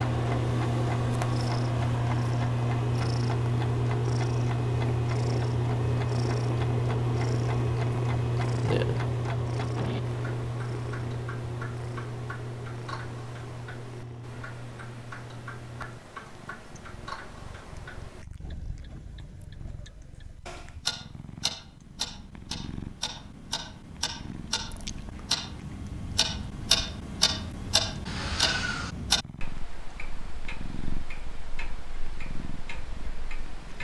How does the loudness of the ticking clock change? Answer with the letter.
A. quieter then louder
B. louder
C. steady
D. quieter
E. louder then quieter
B.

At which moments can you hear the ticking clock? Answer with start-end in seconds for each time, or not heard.
0.0-33.7.